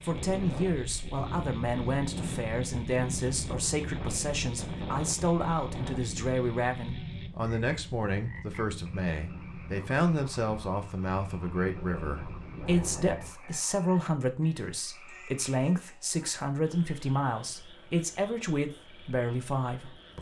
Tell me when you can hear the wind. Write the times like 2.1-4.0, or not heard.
0.0-13.3.